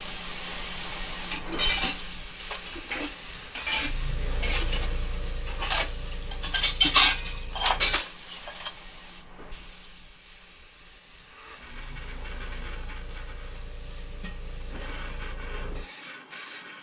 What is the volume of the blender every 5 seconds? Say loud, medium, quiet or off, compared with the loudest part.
off, off, loud, loud.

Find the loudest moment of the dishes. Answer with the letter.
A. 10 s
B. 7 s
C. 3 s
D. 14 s
B.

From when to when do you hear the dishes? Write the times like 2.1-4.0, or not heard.
1.1-8.7.